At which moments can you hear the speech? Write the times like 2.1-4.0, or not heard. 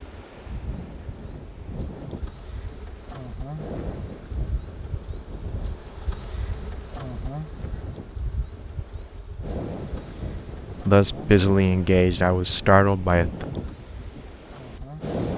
10.8-13.4.